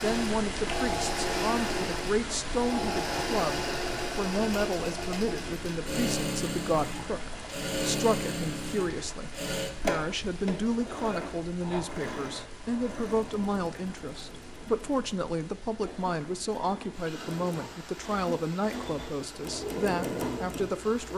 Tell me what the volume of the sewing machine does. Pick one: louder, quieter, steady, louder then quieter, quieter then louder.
quieter then louder.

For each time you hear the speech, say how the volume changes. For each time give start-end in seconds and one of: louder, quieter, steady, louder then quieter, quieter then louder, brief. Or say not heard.
0.0-21.1 steady.